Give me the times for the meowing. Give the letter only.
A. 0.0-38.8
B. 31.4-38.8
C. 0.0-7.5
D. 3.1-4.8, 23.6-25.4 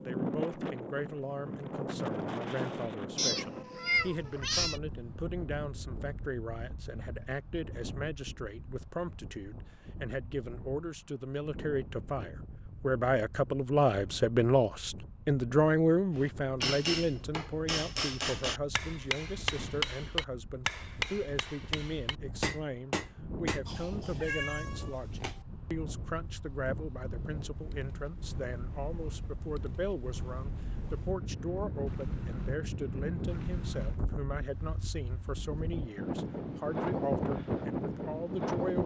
D.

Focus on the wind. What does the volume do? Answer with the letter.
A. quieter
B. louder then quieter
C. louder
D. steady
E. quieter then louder
E.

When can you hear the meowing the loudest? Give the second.
4 s.